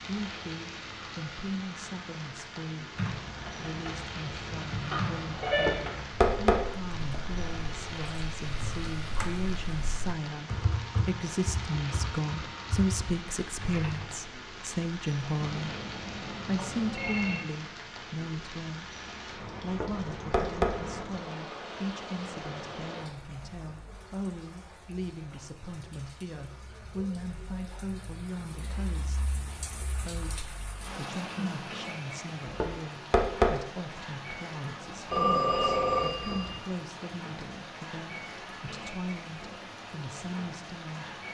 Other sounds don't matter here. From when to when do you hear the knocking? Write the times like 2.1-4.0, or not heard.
5.5-6.6, 19.6-20.8, 32.5-33.5.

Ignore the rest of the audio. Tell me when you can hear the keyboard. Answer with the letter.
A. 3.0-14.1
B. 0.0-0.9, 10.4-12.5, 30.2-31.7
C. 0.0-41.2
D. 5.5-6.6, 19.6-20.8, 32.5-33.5
A.